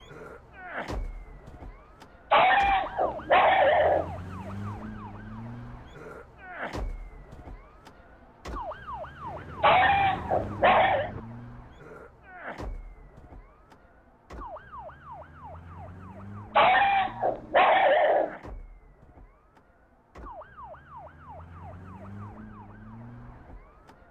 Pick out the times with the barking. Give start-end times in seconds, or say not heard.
2.3-4.1, 9.6-11.1, 16.6-18.4.